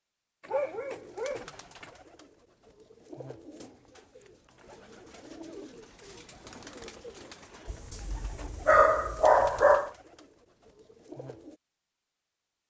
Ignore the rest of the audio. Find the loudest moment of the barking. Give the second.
9 s.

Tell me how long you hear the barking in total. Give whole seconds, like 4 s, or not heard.
4 s.